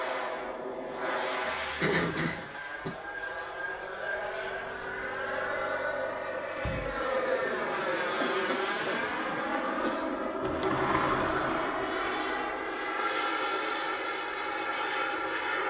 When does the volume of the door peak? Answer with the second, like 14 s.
11 s.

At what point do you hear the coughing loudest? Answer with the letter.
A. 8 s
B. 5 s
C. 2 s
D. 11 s
C.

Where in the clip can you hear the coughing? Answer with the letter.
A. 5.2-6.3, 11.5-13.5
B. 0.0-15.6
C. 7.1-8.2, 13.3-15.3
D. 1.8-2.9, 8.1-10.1
D.